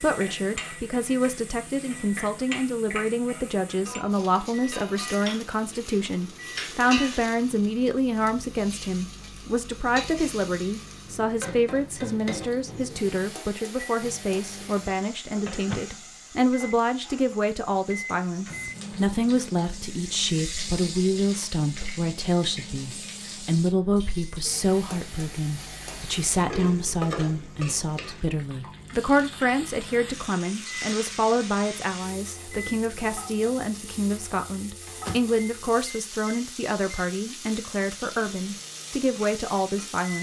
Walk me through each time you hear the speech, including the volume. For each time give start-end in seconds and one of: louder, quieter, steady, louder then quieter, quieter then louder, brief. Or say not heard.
0.0-40.1 steady.